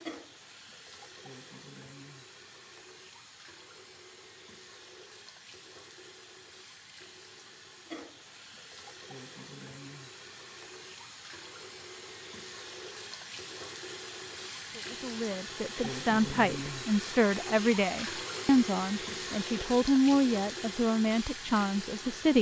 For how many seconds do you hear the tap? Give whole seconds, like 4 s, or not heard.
22 s.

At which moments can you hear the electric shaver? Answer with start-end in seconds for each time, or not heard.
not heard.